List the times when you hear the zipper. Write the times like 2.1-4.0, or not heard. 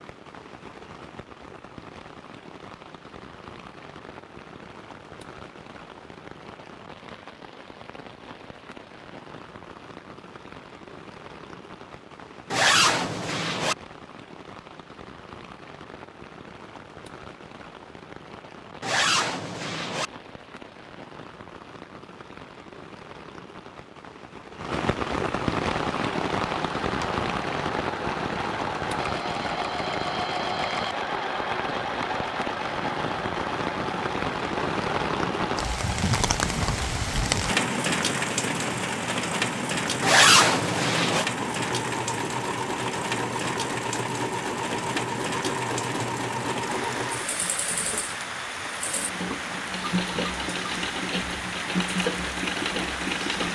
12.5-13.8, 18.8-20.1, 40.0-41.2.